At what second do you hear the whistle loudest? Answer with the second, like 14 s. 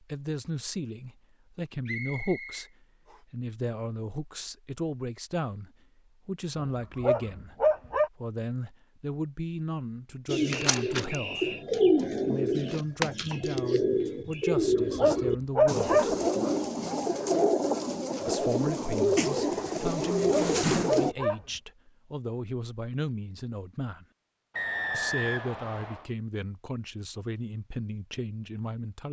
25 s.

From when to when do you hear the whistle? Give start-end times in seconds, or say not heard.
1.9-3.2, 10.7-11.7, 24.6-26.1.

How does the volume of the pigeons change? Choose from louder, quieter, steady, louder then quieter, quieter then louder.
steady.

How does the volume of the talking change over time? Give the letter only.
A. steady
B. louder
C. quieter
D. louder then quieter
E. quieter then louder
A.